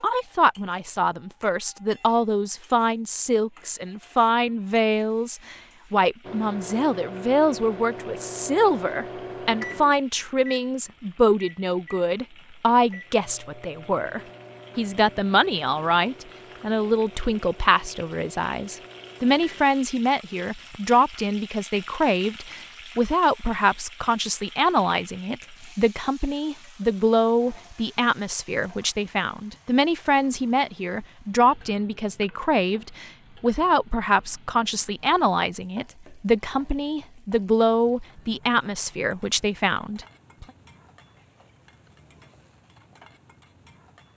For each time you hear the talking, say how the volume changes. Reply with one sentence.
The talking can be heard from 0.0 to 40.5 s, at a steady volume.